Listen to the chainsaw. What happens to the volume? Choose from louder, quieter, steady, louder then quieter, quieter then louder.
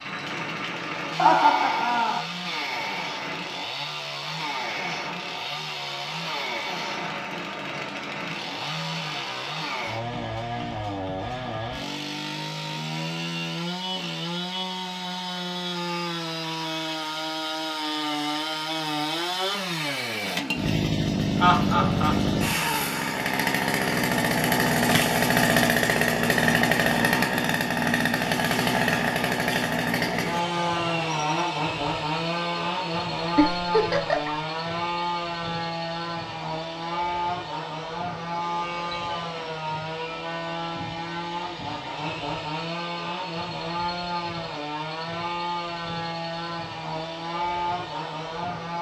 louder then quieter.